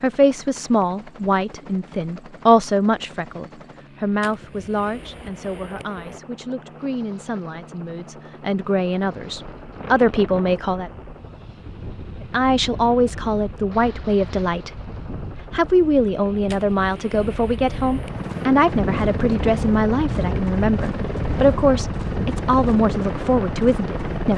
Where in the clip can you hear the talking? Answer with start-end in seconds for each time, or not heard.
0.0-10.9, 12.3-14.9, 15.5-24.3.